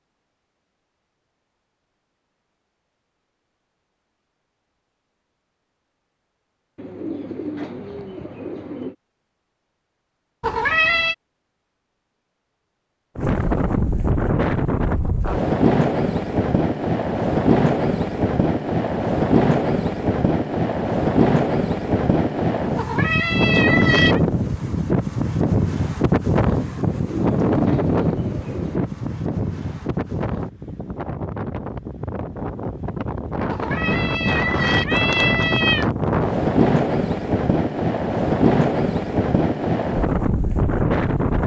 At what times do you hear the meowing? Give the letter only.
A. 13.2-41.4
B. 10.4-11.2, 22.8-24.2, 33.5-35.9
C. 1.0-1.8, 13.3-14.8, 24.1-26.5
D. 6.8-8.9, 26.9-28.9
B.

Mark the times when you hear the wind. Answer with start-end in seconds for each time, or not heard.
13.2-41.4.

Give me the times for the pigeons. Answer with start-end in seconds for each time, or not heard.
6.8-8.9, 26.9-28.9.